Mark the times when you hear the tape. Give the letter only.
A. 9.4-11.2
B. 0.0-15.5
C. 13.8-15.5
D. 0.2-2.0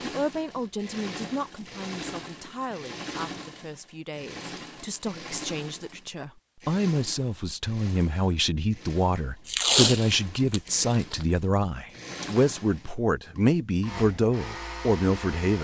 A.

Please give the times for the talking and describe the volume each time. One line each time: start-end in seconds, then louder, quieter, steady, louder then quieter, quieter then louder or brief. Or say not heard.
0.0-15.5 louder.